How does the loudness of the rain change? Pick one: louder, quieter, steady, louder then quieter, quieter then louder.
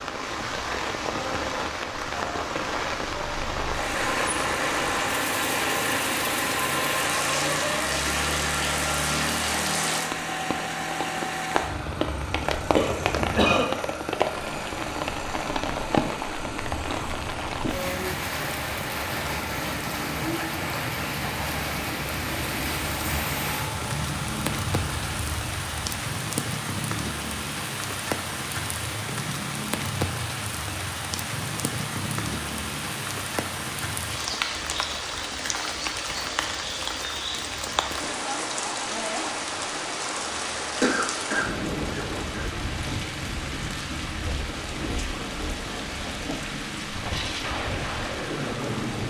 steady.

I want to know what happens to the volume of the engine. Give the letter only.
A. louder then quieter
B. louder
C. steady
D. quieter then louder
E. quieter
E.